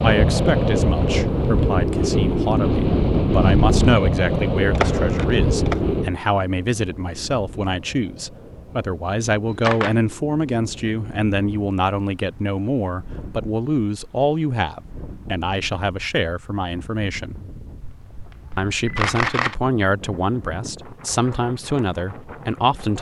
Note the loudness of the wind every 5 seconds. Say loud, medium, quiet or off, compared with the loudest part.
loud, medium, quiet, quiet, quiet.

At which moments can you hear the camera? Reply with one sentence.
You can hear the camera from 4.8 to 5.8 s, from 9.4 to 9.9 s and from 17.8 to 19.6 s.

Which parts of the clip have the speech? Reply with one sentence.
The speech can be heard from 0.0 to 17.4 s and from 18.6 to 22.9 s.